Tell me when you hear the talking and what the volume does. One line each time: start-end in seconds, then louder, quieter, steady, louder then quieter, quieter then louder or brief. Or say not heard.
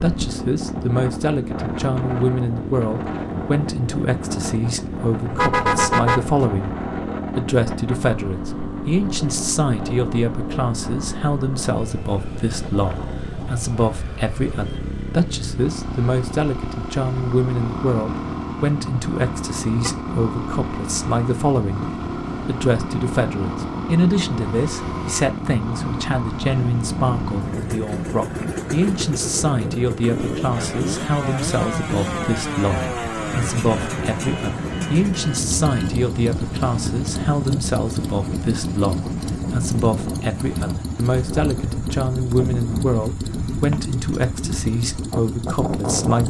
0.0-6.8 steady
7.3-21.9 steady
22.4-46.2 steady.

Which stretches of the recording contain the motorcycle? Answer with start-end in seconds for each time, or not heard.
0.0-46.2.